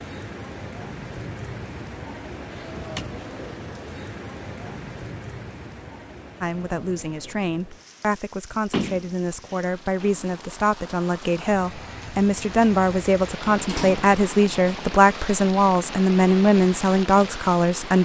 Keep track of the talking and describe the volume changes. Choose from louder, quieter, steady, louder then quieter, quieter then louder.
louder.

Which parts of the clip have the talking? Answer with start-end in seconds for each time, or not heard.
6.4-17.9.